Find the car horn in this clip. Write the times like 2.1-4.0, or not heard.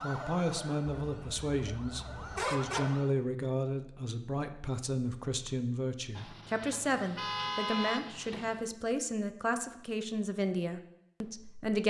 0.8-2.8, 6.2-8.6.